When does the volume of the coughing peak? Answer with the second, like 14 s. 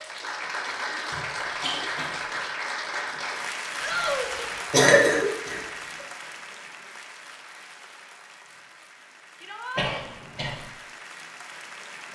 5 s.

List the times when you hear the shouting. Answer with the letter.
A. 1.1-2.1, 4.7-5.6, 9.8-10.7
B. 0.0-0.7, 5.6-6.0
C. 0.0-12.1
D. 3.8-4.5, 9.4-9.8
D.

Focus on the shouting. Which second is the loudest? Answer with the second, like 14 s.
4 s.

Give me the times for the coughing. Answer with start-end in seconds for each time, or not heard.
1.1-2.1, 4.7-5.6, 9.8-10.7.